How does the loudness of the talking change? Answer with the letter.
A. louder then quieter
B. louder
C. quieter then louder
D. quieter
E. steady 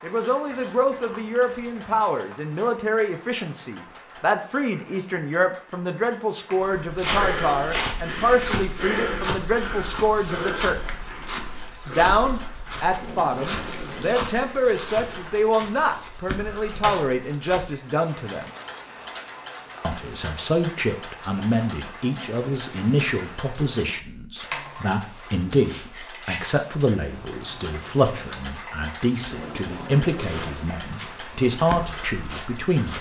E.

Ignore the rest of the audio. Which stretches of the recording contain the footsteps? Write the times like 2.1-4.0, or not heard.
6.6-17.8, 30.0-32.9.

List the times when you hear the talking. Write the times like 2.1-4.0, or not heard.
0.0-10.9, 11.8-18.5, 19.8-32.9.